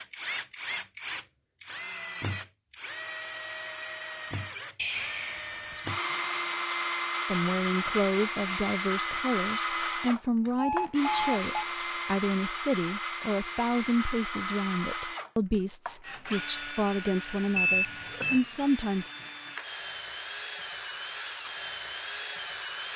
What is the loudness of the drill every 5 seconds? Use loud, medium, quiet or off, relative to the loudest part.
medium, loud, loud, medium, medium.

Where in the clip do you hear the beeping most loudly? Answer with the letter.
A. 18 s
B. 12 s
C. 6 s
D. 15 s
A.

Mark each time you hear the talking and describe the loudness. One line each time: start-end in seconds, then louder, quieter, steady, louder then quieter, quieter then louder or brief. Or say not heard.
7.2-19.1 steady.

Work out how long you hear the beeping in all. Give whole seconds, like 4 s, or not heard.
3 s.